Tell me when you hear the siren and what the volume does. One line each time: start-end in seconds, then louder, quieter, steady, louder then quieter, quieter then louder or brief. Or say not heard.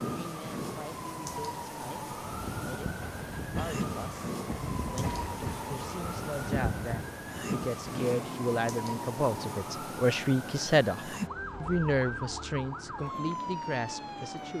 0.0-14.5 steady.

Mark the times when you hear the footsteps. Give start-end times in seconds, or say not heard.
not heard.